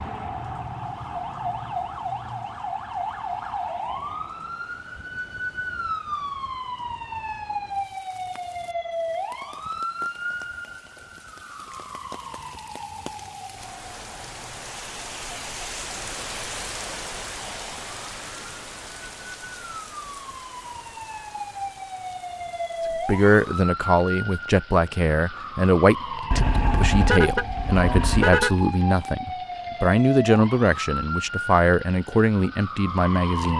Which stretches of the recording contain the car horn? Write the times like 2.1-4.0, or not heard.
26.3-28.7.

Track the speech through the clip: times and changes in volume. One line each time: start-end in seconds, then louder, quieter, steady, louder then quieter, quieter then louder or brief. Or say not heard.
22.9-33.5 steady.